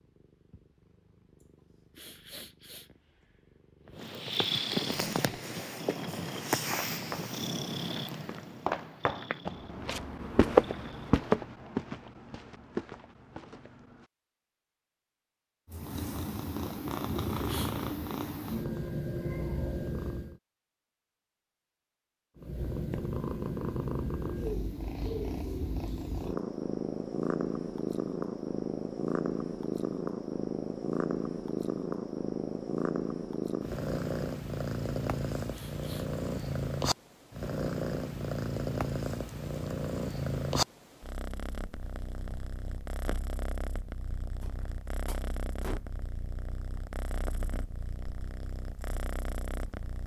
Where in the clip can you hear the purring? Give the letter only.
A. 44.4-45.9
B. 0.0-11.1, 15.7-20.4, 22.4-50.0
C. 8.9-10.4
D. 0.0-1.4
B.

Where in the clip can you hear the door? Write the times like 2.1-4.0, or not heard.
44.4-45.9.